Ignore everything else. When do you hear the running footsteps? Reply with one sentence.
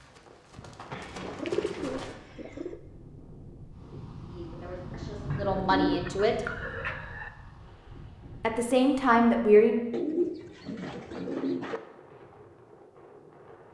You can hear the running footsteps from 0.0 to 2.1 s.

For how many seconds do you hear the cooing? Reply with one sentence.
You can hear the cooing for 6 seconds altogether.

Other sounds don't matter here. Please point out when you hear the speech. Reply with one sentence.
You can hear the speech from 4.3 to 6.4 s and from 8.4 to 9.8 s.